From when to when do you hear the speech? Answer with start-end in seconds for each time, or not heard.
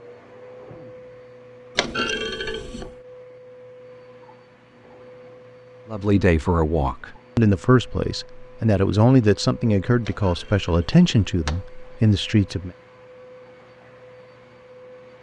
5.9-12.7.